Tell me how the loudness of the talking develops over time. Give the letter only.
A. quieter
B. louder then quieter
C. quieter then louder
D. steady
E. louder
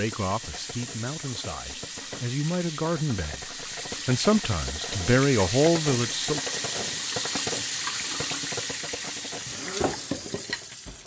E.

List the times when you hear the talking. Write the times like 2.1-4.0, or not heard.
0.0-6.4.